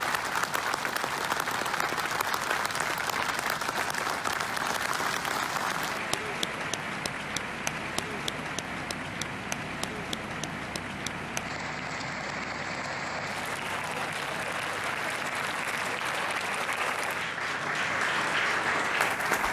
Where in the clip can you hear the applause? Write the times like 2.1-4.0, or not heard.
0.0-19.4.